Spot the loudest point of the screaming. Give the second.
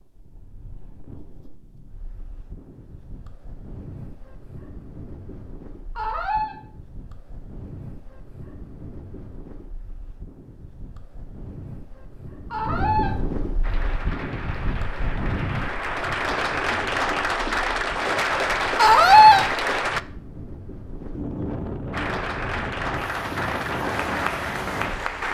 19 s.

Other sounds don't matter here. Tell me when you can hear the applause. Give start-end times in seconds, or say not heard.
13.6-20.0, 21.9-25.2.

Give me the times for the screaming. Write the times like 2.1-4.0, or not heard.
6.0-6.5, 12.5-13.1, 18.8-19.4.